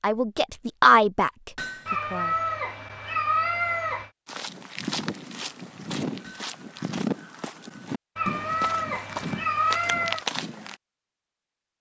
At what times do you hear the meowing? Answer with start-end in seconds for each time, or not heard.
1.9-4.1, 8.2-10.2.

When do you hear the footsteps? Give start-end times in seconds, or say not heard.
4.2-10.8.